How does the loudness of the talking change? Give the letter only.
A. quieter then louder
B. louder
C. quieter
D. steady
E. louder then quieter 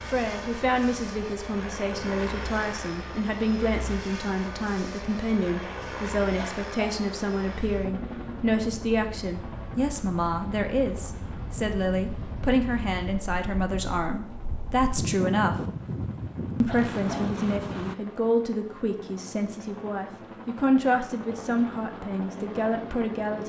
D.